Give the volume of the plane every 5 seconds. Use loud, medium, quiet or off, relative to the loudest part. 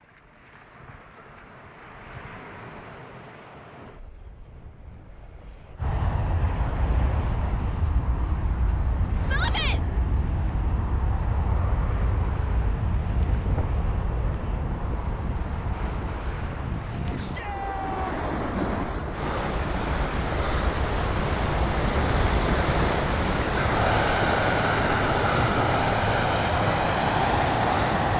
off, medium, medium, quiet, loud, loud.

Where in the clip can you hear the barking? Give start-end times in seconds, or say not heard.
not heard.